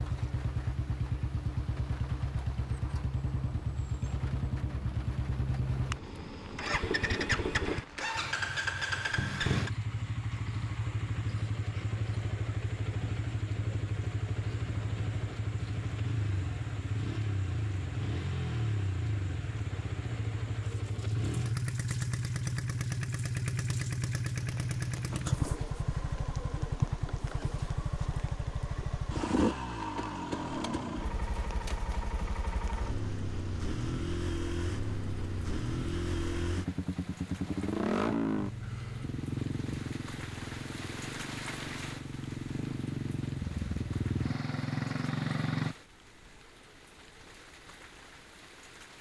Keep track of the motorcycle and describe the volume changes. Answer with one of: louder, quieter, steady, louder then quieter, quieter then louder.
steady.